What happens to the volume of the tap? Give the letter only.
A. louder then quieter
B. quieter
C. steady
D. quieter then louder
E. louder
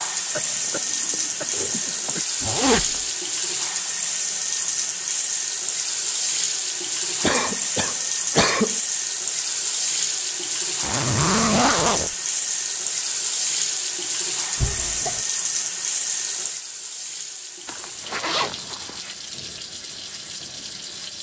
B.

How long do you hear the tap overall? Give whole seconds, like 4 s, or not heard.
21 s.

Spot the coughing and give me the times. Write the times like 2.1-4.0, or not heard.
0.3-2.2, 7.2-8.8, 14.6-15.2.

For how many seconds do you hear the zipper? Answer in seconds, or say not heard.
3 s.